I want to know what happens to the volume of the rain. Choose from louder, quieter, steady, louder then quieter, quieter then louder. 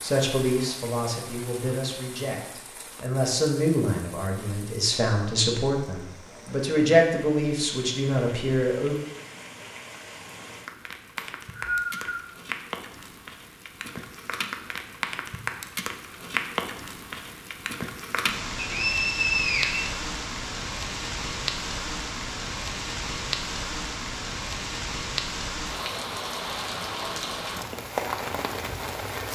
louder.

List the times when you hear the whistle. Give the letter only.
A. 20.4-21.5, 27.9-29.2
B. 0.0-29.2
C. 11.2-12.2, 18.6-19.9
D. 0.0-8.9
C.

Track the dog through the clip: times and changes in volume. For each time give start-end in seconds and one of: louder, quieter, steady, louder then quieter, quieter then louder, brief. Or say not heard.
not heard.